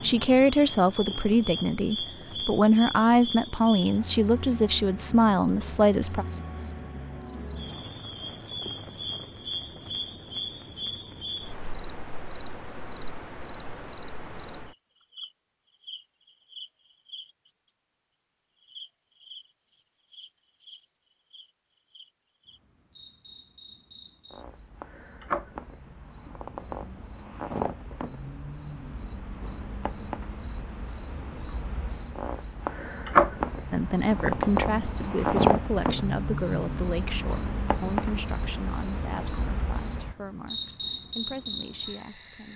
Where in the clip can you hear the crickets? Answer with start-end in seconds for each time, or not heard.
0.0-42.5.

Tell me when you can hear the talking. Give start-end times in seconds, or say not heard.
0.0-6.2, 33.7-42.5.